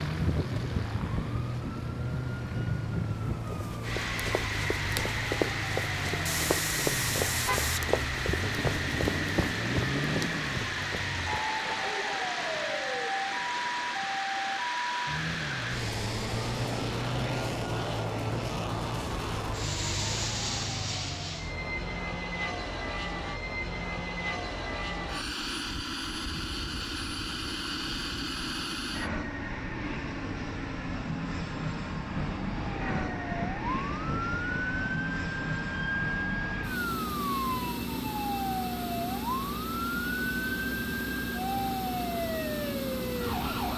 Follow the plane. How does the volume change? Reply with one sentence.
The loudness of the plane stays about the same.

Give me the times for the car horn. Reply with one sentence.
You can hear the car horn from 6.2 to 7.9 s.